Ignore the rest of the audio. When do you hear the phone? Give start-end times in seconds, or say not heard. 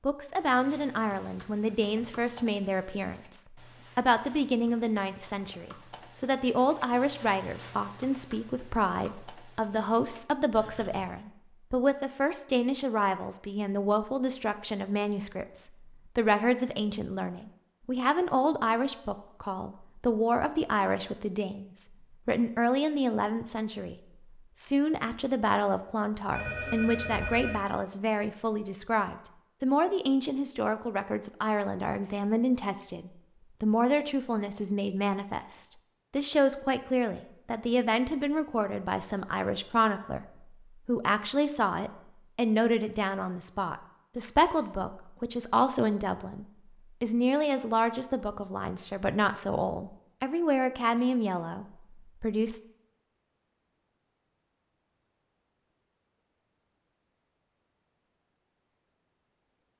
26.4-27.6.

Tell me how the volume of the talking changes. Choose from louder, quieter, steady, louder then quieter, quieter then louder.
steady.